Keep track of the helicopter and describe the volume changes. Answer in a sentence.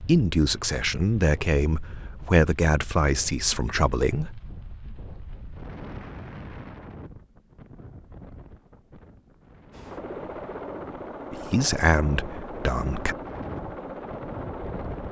The loudness of the helicopter stays about the same.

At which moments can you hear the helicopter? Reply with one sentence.
You can hear the helicopter from 9.7 to 15.0 s.